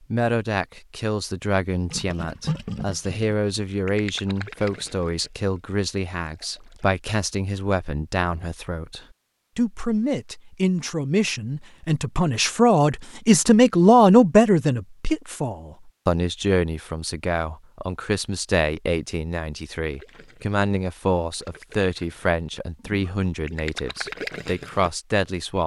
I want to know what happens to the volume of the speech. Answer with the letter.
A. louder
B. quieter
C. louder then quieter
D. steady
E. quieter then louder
C.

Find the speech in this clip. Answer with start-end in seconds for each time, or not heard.
0.1-25.6.